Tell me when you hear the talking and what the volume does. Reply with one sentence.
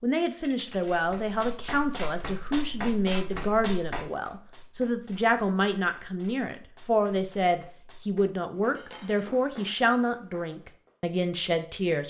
You can hear the talking from 0.0 to 12.0 s, at a steady volume.